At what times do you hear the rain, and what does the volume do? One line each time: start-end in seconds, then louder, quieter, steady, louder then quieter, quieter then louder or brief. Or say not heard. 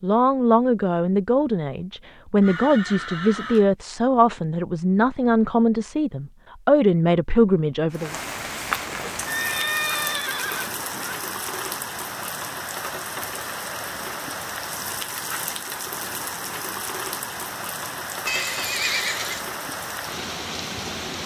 7.9-21.2 steady.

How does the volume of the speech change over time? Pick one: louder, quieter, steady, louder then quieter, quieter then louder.
steady.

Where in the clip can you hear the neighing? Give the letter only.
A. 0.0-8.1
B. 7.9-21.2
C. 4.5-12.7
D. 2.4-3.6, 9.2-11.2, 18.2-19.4
D.